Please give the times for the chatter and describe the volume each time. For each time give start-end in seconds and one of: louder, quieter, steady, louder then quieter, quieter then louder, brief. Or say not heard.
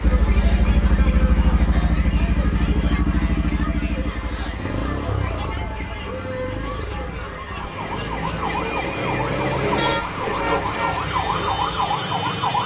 0.0-12.6 steady.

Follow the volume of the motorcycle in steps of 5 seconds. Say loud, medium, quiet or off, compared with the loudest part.
loud, medium, medium.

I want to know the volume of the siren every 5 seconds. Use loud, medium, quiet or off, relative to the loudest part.
off, loud, loud.